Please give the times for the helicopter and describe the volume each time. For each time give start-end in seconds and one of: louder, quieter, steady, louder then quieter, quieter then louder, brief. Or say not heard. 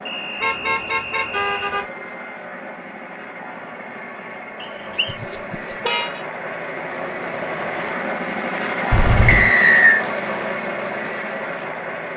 0.0-12.1 louder.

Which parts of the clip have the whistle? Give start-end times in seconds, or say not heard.
0.1-1.8, 4.6-5.2, 9.2-10.1.